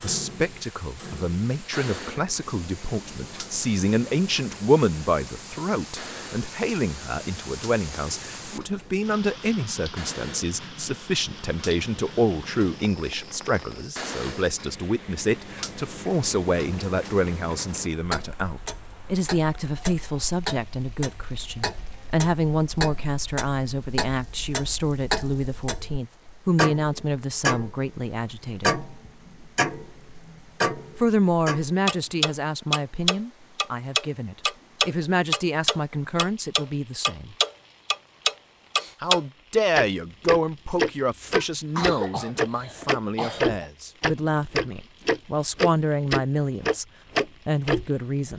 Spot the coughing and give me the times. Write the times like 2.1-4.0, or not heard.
41.3-43.5.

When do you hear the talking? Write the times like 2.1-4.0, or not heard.
0.0-28.8, 30.9-37.4, 39.0-48.3.